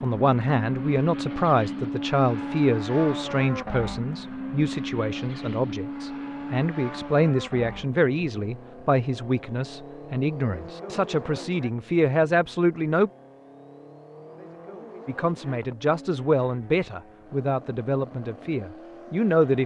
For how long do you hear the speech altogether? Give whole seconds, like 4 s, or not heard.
18 s.